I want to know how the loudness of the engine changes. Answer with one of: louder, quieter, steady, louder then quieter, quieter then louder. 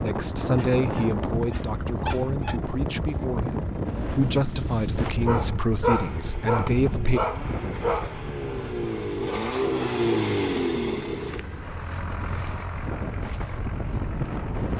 louder then quieter.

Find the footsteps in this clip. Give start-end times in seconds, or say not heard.
not heard.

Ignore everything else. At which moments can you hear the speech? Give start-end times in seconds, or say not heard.
0.0-7.2.